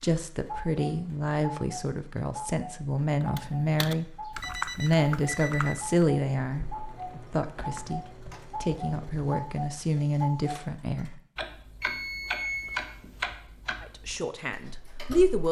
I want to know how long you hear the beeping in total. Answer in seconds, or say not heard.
3 s.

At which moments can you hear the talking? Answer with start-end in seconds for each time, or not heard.
0.0-11.2, 13.8-15.4.